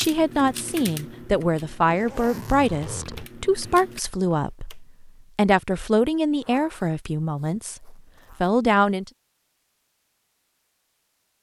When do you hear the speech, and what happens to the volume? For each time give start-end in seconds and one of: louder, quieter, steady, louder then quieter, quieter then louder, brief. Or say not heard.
0.0-9.1 steady.